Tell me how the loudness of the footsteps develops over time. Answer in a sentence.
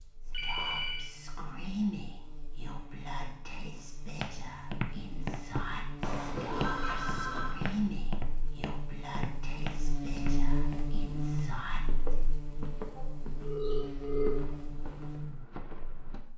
The loudness of the footsteps goes down.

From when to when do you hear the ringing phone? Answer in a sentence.
You can hear the ringing phone from 0.3 to 1.1 s, from 6.0 to 7.6 s and from 12.9 to 14.3 s.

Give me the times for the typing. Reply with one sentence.
You can't hear the typing here.